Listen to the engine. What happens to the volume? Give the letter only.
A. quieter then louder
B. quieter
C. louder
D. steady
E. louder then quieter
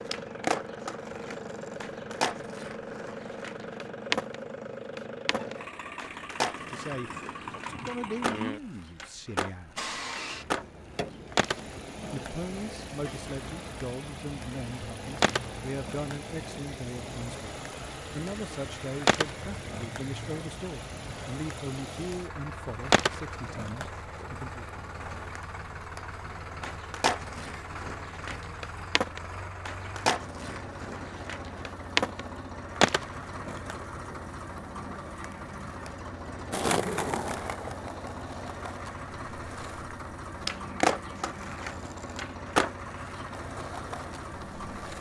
D.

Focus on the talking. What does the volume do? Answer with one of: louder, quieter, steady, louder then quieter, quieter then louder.
steady.